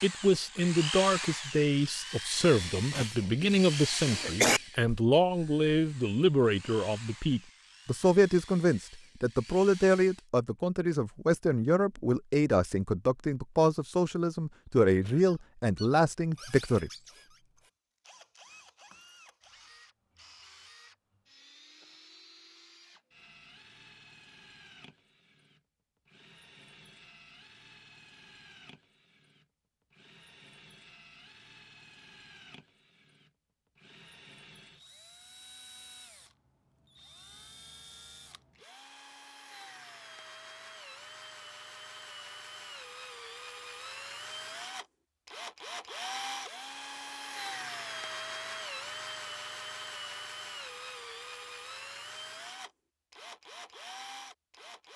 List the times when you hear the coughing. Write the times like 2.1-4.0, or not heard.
2.6-4.6.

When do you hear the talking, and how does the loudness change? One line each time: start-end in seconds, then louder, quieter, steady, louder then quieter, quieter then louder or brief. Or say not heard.
0.0-16.9 steady.